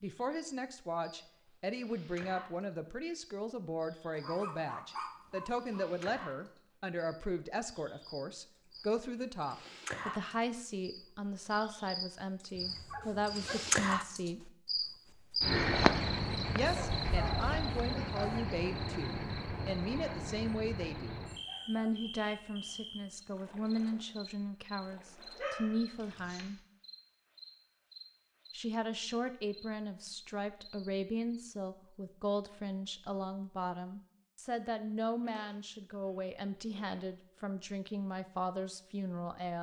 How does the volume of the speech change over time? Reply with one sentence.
The loudness of the speech stays about the same.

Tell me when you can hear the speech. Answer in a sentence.
You can hear the speech from 0.0 to 14.5 s, from 16.6 to 26.6 s and from 28.5 to 39.5 s.